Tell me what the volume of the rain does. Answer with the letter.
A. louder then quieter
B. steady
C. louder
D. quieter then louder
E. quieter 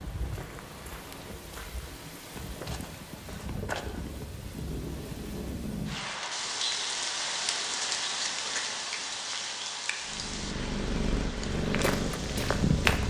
A.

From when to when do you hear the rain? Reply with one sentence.
You can hear the rain from 0.0 to 13.0 s.